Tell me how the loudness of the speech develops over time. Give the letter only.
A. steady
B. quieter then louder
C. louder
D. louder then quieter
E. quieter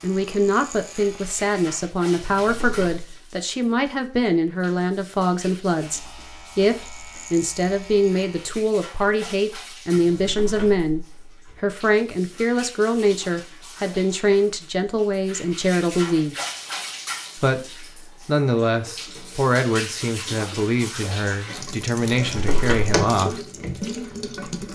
A.